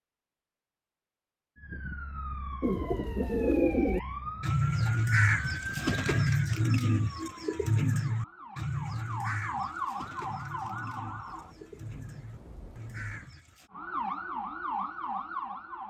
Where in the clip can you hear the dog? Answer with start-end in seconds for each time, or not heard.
not heard.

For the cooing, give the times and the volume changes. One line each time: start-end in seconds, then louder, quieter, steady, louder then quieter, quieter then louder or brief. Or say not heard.
2.6-13.7 quieter.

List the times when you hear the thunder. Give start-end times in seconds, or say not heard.
11.2-13.3.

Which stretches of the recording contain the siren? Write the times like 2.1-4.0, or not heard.
1.6-11.5, 13.7-15.8.